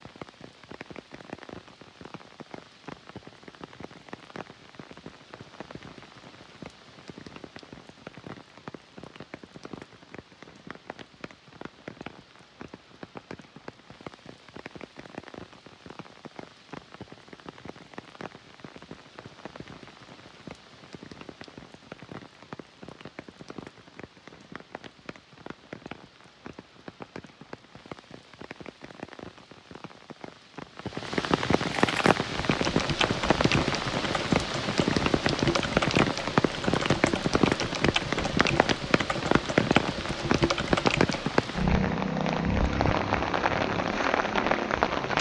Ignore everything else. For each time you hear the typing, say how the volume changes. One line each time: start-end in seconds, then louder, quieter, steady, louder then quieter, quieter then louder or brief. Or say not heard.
31.7-41.3 steady.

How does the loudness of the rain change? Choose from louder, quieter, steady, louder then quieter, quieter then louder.
louder.